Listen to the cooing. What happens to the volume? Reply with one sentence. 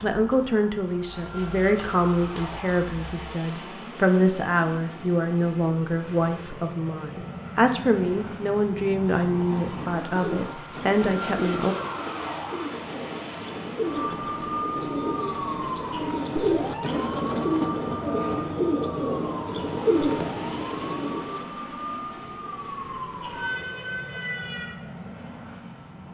The loudness of the cooing goes up.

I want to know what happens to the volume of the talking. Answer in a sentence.
The loudness of the talking stays about the same.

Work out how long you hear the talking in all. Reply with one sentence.
You can hear the talking for 12 seconds altogether.